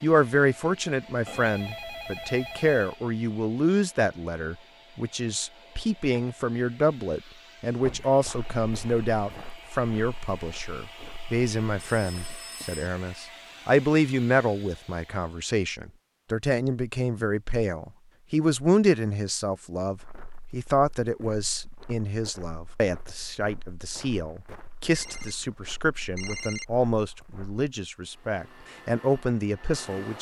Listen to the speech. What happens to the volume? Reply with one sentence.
The volume of the speech stays about the same.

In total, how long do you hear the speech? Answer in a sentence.
The speech can be heard for 30 seconds in total.